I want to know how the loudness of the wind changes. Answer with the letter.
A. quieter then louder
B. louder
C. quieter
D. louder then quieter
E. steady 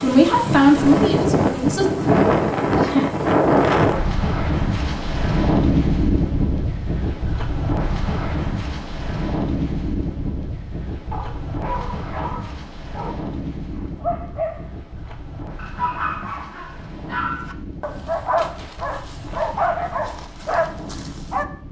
C.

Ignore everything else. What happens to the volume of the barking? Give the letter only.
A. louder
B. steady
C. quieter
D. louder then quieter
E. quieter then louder
A.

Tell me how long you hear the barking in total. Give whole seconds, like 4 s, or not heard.
10 s.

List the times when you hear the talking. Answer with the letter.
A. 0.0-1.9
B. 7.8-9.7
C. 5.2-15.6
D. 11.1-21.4
A.